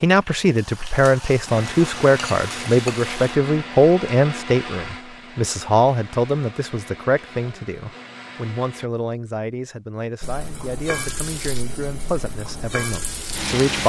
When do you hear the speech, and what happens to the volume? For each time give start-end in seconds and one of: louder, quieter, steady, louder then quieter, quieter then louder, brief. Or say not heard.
0.0-13.8 quieter.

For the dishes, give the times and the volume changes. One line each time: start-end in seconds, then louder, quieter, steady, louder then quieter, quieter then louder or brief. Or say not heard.
not heard.